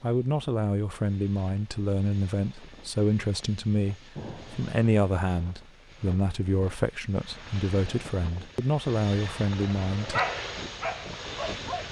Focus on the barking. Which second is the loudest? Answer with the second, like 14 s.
10 s.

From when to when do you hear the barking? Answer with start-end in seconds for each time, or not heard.
9.7-11.8.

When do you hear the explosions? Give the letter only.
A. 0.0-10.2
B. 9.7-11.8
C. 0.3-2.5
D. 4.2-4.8
D.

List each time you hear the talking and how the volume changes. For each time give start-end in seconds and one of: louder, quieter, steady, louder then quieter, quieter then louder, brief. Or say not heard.
0.0-10.2 steady.